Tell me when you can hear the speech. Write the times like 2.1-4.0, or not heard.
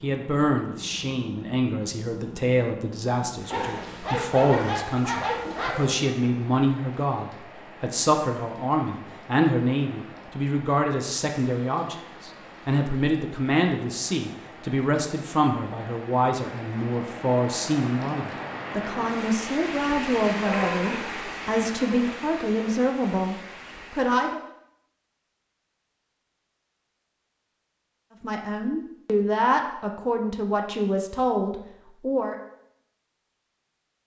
0.0-24.4, 28.2-32.4.